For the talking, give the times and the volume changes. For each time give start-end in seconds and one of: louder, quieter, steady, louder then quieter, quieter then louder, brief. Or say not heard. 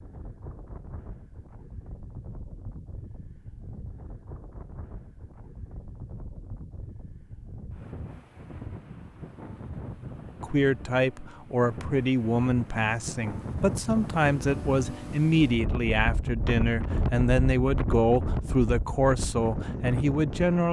10.4-20.6 steady.